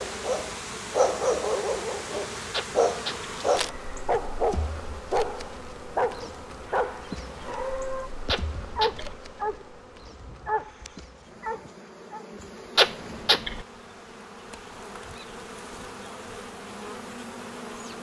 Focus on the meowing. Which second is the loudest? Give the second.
13 s.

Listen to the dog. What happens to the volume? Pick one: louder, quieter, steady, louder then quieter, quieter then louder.
quieter.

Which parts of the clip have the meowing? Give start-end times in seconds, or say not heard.
2.5-3.4, 8.2-9.2, 12.8-13.7.